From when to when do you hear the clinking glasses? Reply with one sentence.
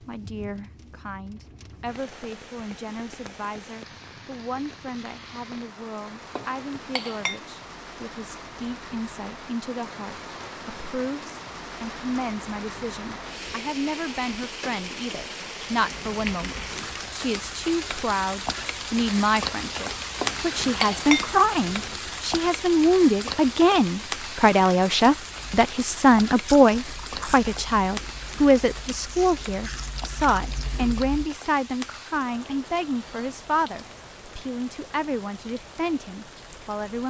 The clinking glasses can be heard from 6.3 to 7.4 s and from 20.2 to 21.9 s.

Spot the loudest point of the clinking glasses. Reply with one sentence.
The loudest moment of the clinking glasses is at 21 seconds.